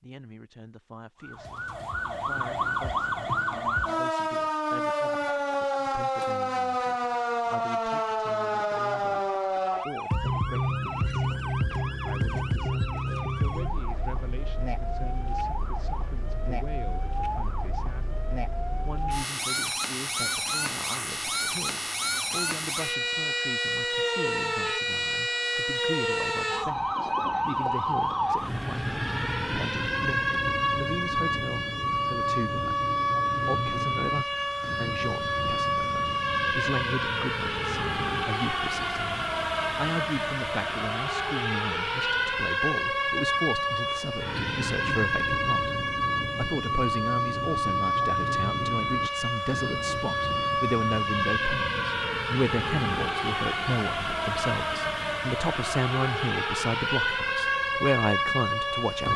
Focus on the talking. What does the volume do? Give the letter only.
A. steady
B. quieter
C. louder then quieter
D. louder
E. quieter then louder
D.